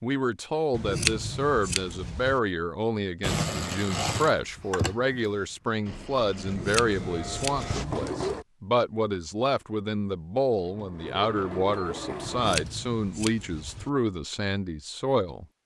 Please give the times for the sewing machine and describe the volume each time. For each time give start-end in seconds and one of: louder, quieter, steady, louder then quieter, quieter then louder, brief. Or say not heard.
3.2-8.4 quieter then louder
10.5-12.8 brief.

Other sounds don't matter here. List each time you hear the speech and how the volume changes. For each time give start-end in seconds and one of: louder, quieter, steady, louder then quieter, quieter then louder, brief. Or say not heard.
0.0-15.4 steady.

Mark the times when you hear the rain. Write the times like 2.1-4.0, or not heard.
not heard.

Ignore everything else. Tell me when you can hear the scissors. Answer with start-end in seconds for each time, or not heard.
0.7-2.4, 6.5-8.1, 12.2-13.9.